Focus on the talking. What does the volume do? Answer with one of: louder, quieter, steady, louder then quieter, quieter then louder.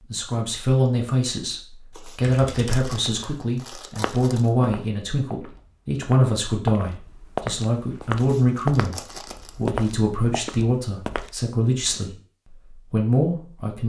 steady.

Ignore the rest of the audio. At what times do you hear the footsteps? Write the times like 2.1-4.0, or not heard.
4.0-11.3.